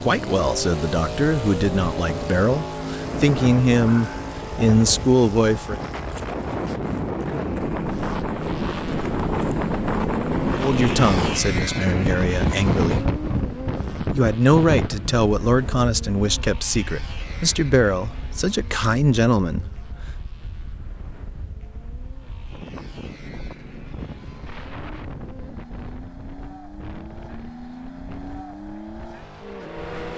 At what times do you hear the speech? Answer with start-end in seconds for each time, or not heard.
0.0-5.8, 10.6-13.2, 14.0-19.9.